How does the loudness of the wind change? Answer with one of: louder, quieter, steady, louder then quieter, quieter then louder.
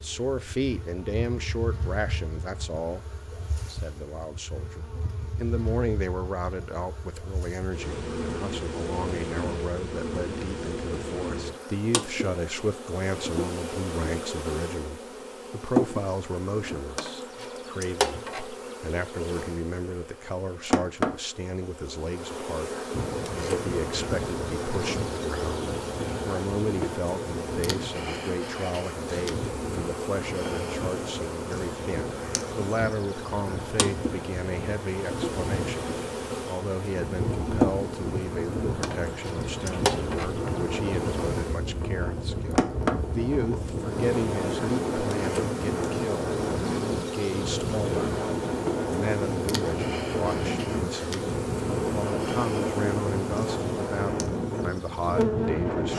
louder.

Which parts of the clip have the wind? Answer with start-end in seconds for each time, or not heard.
22.9-55.9.